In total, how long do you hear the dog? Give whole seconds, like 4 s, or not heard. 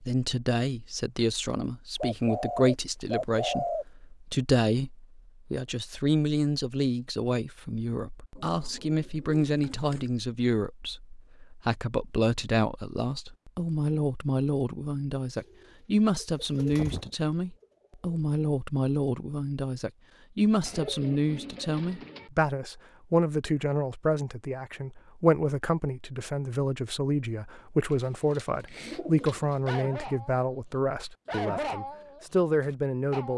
4 s.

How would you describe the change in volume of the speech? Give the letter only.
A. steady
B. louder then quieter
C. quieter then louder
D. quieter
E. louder
A.